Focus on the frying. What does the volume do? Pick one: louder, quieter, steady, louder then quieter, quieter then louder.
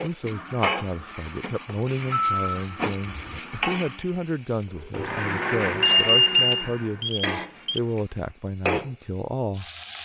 quieter then louder.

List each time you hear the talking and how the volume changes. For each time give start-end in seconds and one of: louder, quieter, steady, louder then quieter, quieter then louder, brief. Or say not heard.
0.0-9.7 steady.